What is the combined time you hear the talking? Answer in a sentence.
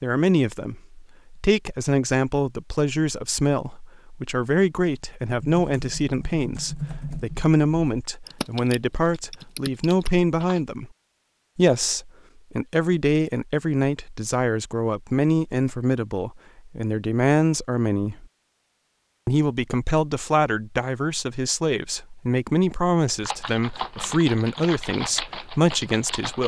You can hear the talking for 25 seconds altogether.